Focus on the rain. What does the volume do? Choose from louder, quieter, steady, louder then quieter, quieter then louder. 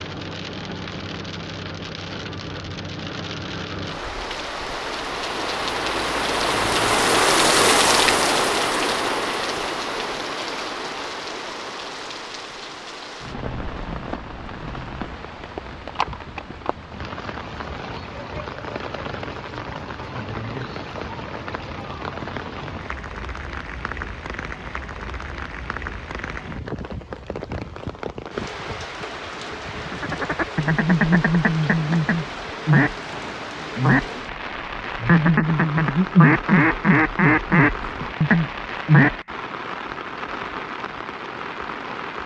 quieter.